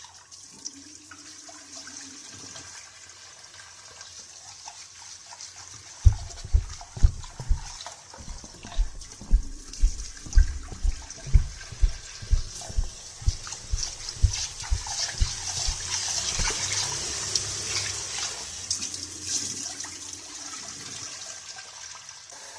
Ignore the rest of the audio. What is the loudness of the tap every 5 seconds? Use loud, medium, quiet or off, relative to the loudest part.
quiet, quiet, medium, loud, medium.